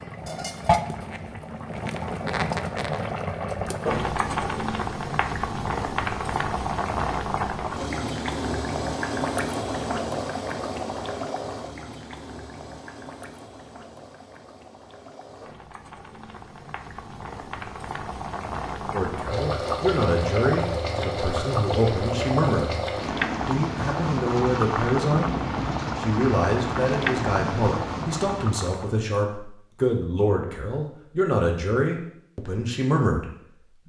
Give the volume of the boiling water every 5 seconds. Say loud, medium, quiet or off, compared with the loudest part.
loud, loud, medium, medium, loud, loud, off.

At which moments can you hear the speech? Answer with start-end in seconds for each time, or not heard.
18.9-22.8, 23.4-25.3, 25.9-33.8.